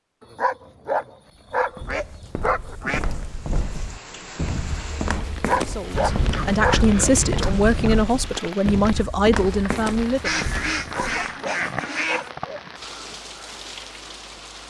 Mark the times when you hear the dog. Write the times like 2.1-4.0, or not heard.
0.3-2.8, 5.3-6.9, 10.8-12.6.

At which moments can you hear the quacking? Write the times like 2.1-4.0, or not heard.
1.9-3.3, 5.9-8.0, 10.2-12.3.